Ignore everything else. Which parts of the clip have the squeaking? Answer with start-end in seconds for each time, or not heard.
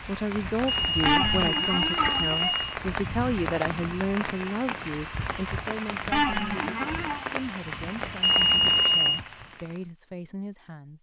1.1-2.5, 6.1-7.2.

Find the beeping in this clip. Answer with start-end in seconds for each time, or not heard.
0.7-2.8, 8.2-9.2.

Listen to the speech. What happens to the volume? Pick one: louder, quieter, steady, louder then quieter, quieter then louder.
quieter.